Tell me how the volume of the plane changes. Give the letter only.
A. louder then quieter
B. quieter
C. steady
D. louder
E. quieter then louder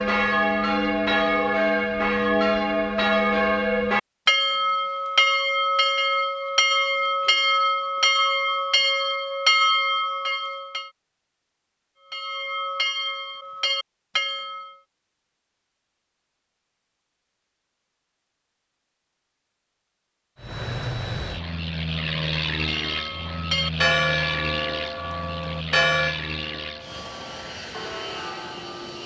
B.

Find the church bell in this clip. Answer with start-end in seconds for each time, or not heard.
0.0-10.9, 12.1-14.8, 22.6-29.0.